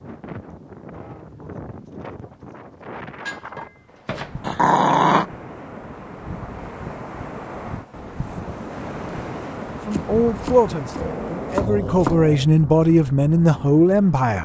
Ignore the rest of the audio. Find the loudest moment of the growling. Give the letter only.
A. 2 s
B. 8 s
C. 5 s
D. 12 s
C.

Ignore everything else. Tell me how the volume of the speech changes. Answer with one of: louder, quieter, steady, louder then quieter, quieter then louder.
quieter then louder.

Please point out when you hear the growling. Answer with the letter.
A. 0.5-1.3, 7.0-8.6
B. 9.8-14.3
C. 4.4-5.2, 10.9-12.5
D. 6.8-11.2
C.